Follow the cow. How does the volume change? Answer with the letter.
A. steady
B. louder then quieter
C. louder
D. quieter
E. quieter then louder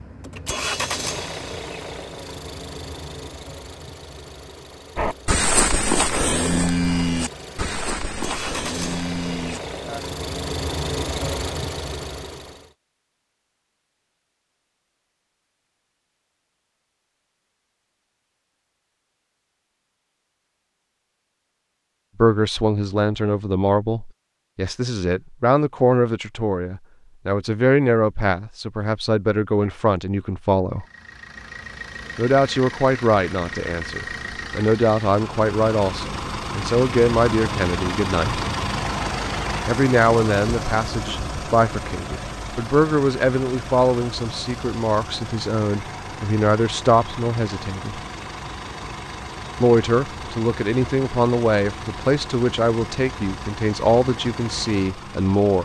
D.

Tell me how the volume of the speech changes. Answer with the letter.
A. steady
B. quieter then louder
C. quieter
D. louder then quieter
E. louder
A.